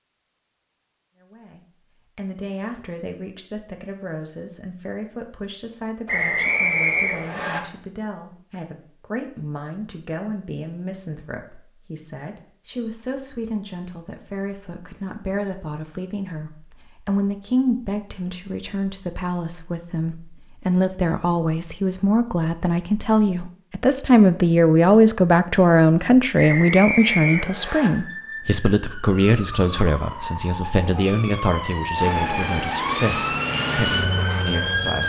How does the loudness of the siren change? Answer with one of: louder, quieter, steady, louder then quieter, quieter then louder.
louder.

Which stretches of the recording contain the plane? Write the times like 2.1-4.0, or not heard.
31.9-35.0.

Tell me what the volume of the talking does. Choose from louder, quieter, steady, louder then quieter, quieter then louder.
louder then quieter.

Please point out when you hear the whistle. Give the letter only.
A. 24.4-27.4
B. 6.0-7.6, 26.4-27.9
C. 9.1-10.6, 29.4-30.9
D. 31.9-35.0
B.